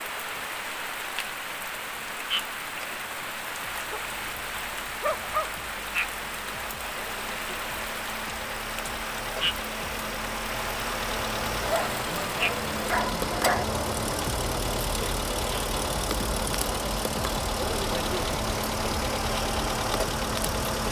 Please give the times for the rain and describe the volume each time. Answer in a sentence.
You can hear the rain from 0.0 to 20.8 s, at a steady volume.